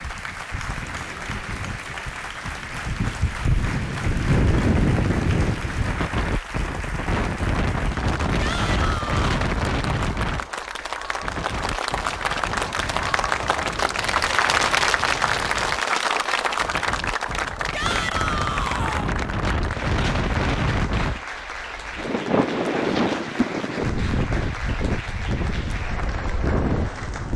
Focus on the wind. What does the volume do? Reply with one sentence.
The volume of the wind goes down, then up.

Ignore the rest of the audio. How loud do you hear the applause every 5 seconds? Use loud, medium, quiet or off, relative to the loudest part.
medium, medium, loud, loud, medium, medium.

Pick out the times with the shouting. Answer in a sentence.
The shouting can be heard from 8.3 to 9.3 s and from 17.7 to 19.1 s.